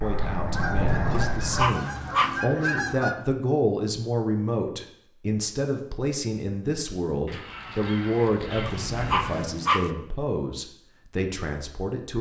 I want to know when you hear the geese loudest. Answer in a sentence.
The volume of the geese peaks at 3 seconds.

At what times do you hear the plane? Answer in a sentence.
The plane can be heard from 0.0 to 1.7 s.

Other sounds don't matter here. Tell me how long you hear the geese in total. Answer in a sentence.
You can hear the geese for 5 seconds altogether.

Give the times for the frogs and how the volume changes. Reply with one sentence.
You can't hear the frogs here.